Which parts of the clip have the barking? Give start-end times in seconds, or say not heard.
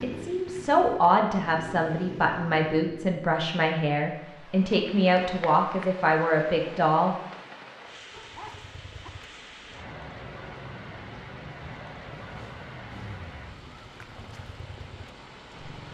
8.1-9.1.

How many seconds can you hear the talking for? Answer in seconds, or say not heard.
7 s.